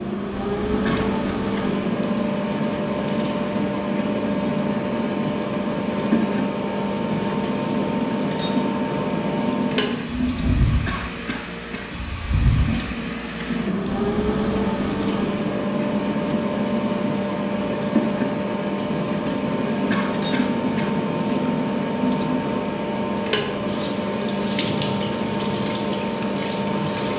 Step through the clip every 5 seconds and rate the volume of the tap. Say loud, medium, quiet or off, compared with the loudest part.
loud, loud, loud, loud, loud, medium.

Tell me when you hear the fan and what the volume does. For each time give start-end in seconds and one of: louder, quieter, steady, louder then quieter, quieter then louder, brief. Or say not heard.
0.0-27.1 steady.